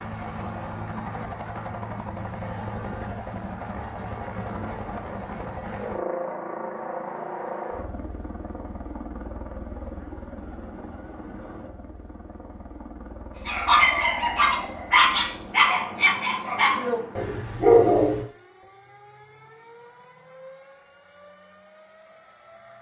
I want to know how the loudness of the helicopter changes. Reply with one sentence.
The volume of the helicopter goes down.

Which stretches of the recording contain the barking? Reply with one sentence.
You can hear the barking from 13.4 to 18.2 s.